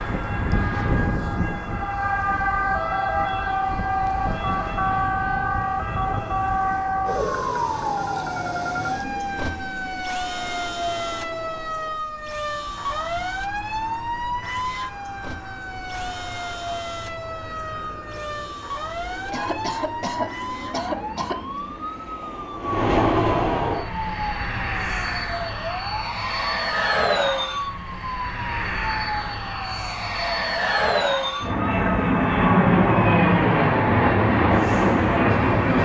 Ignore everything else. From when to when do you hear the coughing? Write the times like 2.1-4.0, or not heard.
19.3-21.6.